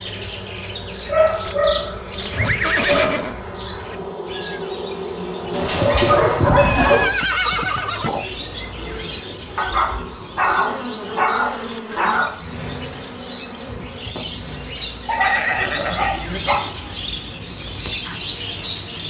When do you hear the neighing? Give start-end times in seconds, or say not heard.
1.4-3.4, 6.5-8.2, 15.2-16.4.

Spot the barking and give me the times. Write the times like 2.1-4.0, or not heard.
1.1-3.1, 5.5-7.1, 9.6-12.3, 15.1-16.6.